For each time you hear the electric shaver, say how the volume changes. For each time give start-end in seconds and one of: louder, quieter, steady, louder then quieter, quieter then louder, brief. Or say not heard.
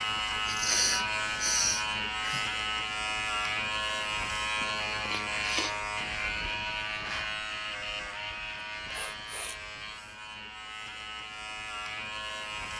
0.0-12.7 quieter.